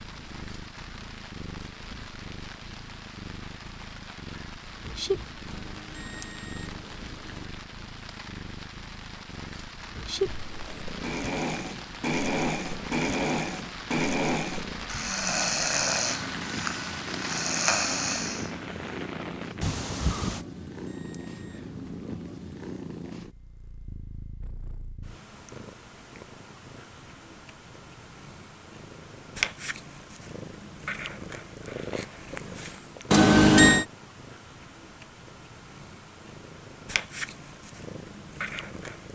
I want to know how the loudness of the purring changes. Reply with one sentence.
The volume of the purring stays about the same.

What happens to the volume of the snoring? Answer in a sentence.
The loudness of the snoring stays about the same.